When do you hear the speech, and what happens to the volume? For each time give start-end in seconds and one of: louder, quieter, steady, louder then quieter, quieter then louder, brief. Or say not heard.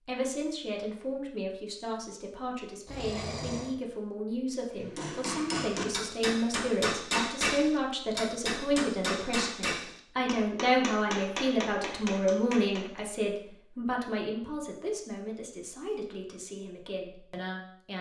0.1-17.9 louder then quieter.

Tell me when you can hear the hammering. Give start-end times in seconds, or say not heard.
4.8-13.1.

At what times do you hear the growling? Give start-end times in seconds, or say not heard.
2.9-3.8.